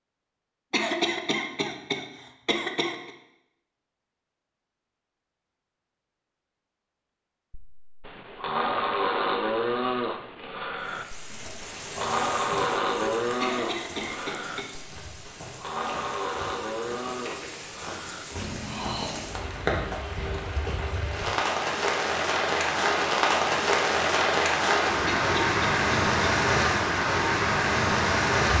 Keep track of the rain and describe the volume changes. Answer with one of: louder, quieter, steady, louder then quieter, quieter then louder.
louder.